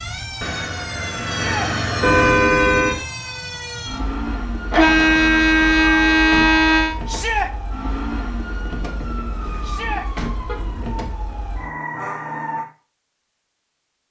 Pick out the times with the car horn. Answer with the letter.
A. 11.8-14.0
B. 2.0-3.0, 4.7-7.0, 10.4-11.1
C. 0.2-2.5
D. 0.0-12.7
B.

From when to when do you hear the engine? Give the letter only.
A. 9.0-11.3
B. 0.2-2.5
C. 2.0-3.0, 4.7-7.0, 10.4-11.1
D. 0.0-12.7
B.